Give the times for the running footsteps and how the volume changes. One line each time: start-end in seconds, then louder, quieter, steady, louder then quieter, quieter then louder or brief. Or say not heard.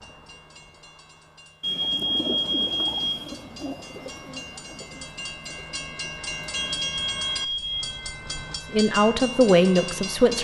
not heard.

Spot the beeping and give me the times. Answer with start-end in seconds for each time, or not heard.
1.6-3.2, 6.5-8.0.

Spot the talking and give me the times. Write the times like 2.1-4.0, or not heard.
8.7-10.4.